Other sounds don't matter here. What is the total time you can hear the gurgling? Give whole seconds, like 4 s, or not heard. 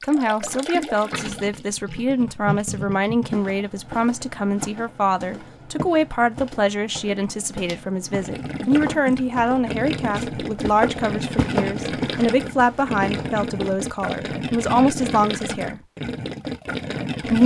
13 s.